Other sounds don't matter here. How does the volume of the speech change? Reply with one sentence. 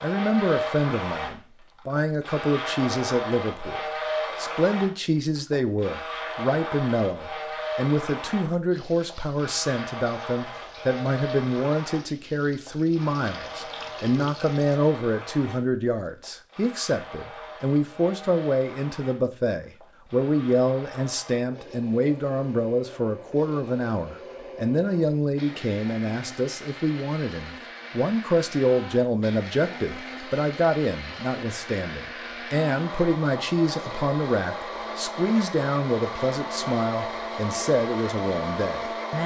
The volume of the speech stays about the same.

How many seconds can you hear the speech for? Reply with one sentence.
You can hear the speech for 39 seconds altogether.